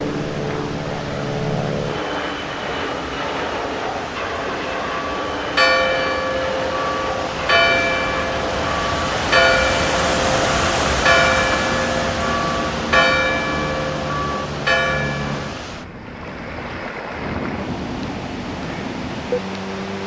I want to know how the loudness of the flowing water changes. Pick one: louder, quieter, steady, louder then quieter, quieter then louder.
louder then quieter.